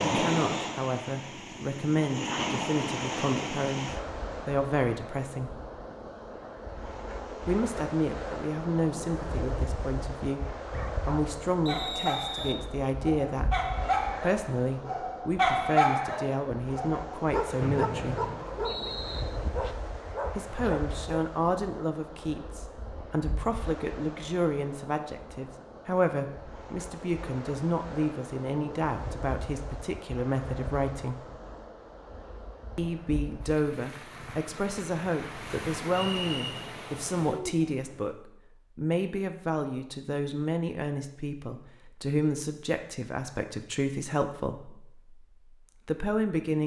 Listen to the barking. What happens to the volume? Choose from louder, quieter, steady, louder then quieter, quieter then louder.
louder then quieter.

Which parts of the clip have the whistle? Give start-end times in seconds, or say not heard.
11.7-12.6, 17.6-19.2, 36.1-36.6.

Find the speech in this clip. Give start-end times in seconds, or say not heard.
0.1-5.5, 7.5-18.2, 20.4-31.2, 32.8-45.1, 45.9-46.6.